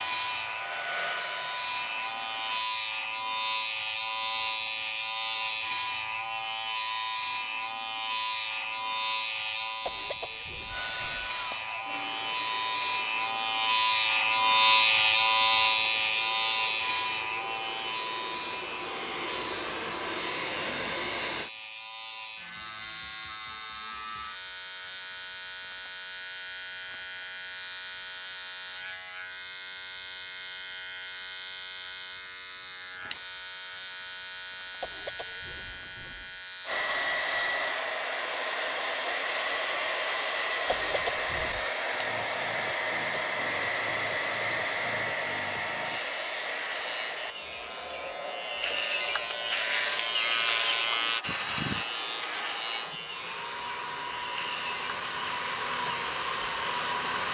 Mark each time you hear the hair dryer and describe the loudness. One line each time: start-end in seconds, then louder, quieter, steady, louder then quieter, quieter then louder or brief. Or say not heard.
0.0-2.6 brief
10.7-21.5 quieter then louder
36.6-57.2 quieter then louder.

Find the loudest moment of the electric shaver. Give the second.
15 s.